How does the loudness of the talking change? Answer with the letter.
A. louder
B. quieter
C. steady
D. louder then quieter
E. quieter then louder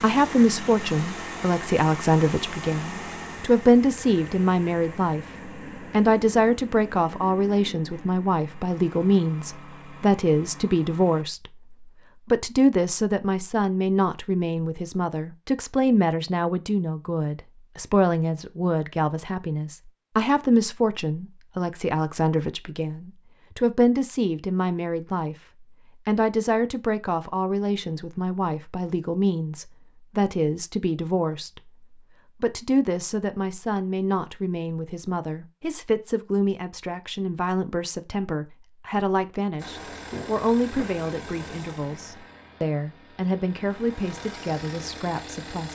B.